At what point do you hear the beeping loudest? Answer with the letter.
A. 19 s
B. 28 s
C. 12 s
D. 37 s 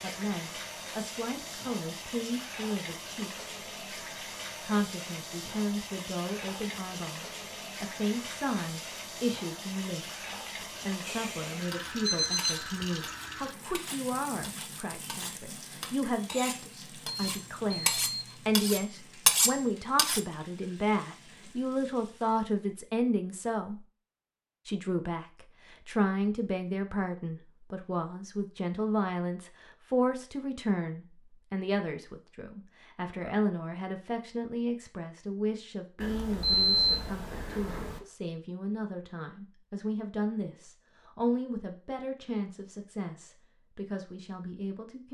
D.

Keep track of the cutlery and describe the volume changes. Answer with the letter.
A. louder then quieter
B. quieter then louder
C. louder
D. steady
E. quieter
C.